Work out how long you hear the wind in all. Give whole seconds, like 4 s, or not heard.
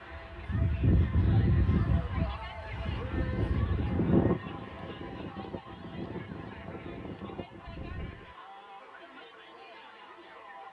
8 s.